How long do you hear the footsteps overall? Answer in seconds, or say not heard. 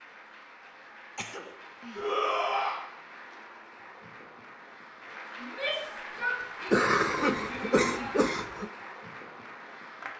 not heard.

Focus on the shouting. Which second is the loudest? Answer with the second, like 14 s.
2 s.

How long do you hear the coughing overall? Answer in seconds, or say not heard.
3 s.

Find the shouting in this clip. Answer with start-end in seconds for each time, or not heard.
1.9-2.8, 5.4-8.2.